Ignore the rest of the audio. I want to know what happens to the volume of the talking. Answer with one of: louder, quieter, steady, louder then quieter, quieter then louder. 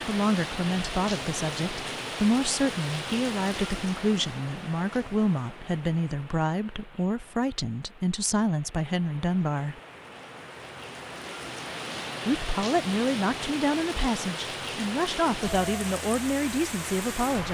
steady.